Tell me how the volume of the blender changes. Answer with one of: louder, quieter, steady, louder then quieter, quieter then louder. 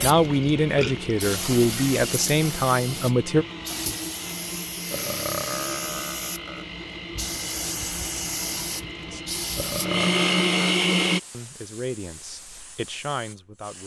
louder.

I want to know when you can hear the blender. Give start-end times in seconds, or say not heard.
0.0-11.2.